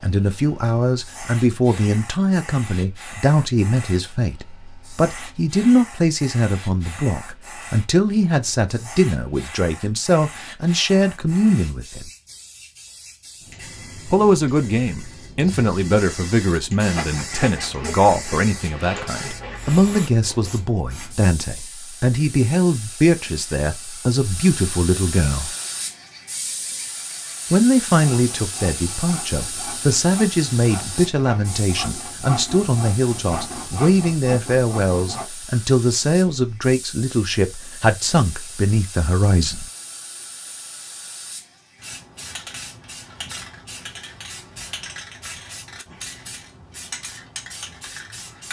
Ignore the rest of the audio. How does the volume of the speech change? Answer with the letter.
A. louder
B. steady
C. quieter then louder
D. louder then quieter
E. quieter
B.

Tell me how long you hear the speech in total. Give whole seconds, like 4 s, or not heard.
36 s.